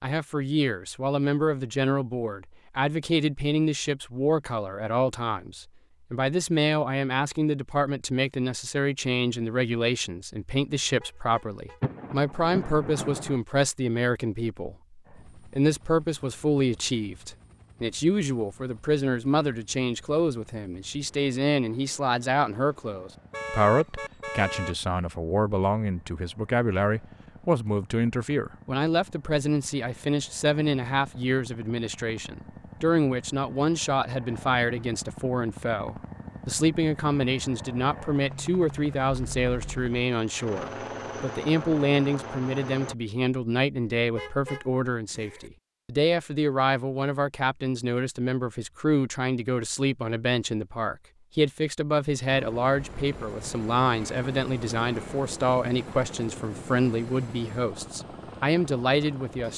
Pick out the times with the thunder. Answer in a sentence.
The thunder can be heard from 11.8 to 13.4 s.